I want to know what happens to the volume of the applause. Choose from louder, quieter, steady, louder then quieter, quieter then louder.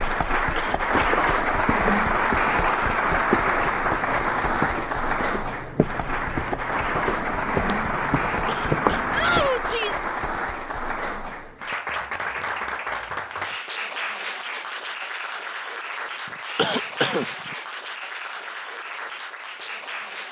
quieter.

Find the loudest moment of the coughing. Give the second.
17 s.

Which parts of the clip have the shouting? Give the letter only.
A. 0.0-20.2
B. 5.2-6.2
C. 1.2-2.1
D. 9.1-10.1
D.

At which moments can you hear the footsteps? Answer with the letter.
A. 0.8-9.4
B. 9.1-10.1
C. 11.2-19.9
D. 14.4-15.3
A.